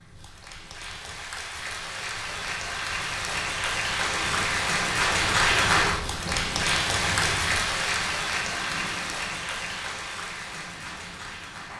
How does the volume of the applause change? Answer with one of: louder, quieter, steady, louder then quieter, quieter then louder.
louder then quieter.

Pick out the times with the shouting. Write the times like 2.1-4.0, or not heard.
not heard.